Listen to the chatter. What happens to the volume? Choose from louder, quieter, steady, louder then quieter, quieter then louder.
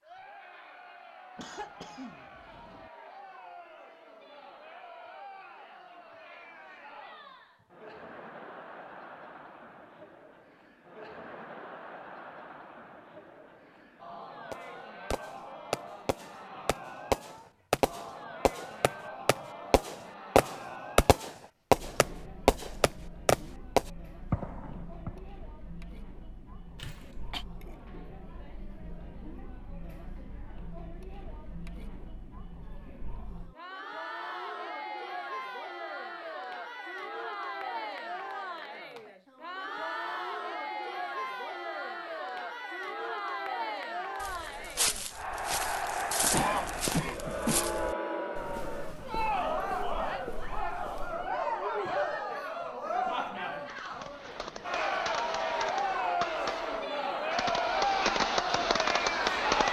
louder.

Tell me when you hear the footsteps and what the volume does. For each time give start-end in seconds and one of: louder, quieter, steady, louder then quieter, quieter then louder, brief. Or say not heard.
44.2-51.3 quieter.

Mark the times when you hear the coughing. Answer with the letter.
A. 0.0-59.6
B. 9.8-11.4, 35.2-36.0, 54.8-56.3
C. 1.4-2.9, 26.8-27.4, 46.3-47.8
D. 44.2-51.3
C.